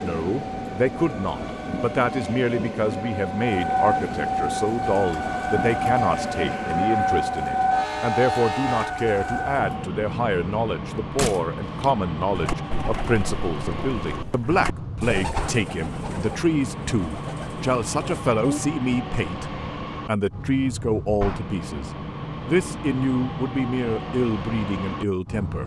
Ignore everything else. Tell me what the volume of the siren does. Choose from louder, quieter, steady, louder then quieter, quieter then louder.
louder.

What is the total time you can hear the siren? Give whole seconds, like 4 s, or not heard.
10 s.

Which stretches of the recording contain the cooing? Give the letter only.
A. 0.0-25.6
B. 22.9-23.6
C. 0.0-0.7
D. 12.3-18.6
D.